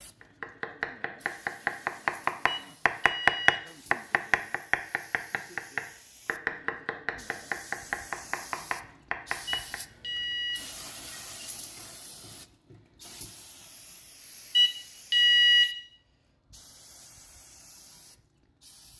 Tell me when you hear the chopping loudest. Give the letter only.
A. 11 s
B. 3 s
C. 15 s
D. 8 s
B.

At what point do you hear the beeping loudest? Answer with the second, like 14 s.
15 s.